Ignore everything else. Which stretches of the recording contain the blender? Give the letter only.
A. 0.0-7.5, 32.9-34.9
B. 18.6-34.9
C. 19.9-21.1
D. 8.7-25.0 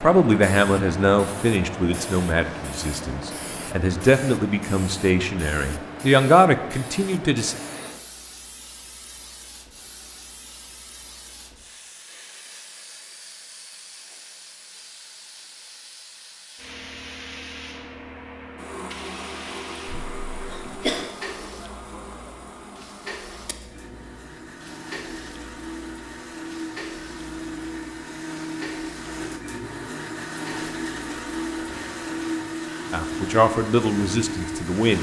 B.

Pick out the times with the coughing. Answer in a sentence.
The coughing can be heard from 19.9 to 21.1 s.